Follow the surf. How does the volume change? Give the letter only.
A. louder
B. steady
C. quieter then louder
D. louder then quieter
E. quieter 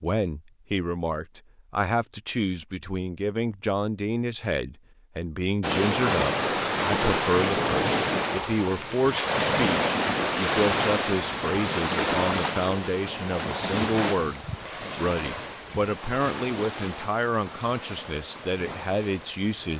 E.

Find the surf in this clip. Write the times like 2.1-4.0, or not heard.
5.6-19.7.